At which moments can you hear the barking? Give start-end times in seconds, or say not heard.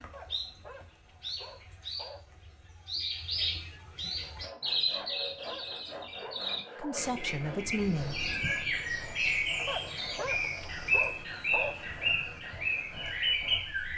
0.1-2.2, 5.0-7.1, 9.7-12.0.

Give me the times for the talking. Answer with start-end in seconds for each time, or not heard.
6.8-8.2.